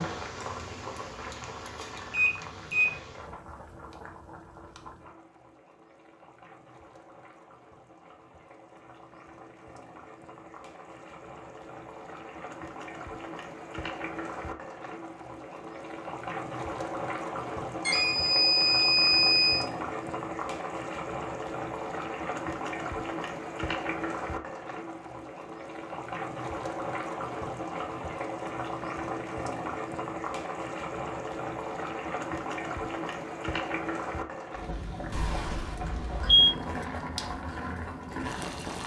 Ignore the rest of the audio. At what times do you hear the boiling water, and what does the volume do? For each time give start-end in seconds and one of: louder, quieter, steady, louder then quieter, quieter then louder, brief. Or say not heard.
0.0-38.8 louder.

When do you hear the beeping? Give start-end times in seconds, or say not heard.
2.1-2.9, 17.9-19.6, 35.1-36.5.